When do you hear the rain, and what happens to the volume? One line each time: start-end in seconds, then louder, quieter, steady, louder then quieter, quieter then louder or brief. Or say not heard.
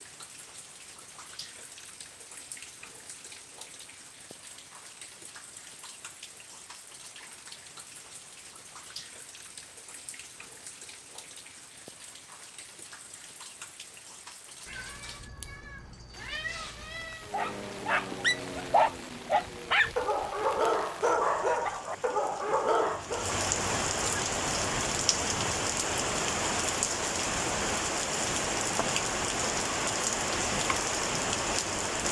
0.0-32.0 louder.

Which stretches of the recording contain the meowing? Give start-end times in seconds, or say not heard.
14.7-17.3.